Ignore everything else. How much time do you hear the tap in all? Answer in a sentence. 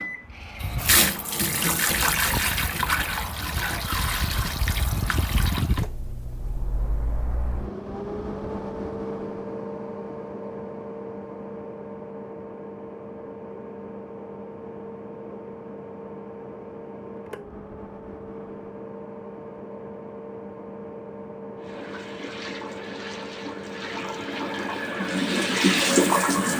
The tap can be heard for 11 seconds in total.